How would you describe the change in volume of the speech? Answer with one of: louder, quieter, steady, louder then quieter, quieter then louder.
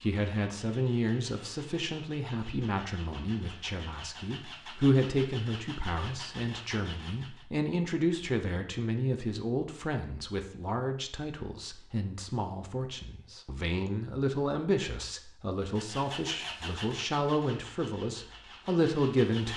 steady.